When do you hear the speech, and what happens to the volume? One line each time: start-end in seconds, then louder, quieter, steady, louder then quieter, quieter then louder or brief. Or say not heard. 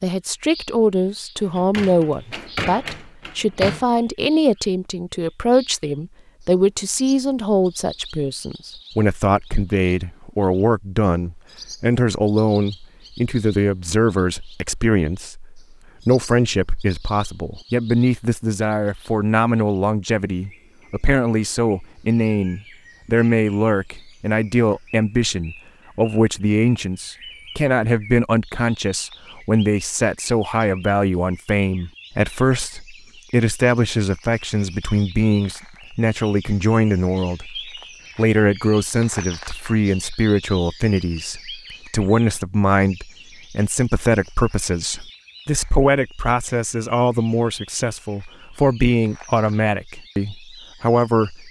0.0-51.4 steady.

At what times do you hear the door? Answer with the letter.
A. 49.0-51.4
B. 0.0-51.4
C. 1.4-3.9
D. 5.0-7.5
C.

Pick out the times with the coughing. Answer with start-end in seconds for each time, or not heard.
not heard.